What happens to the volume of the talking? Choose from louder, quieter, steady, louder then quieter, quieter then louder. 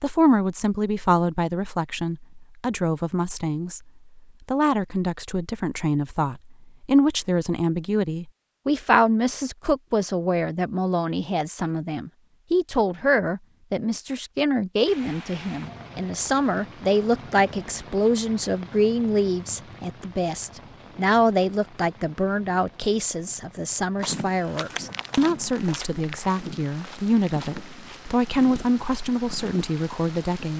steady.